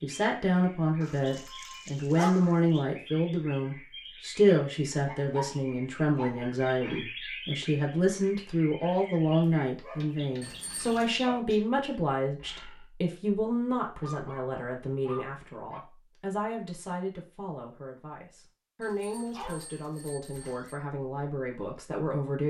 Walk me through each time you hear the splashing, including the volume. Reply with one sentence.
The splashing can't be heard in this clip.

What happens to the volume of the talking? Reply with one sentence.
The volume of the talking goes down.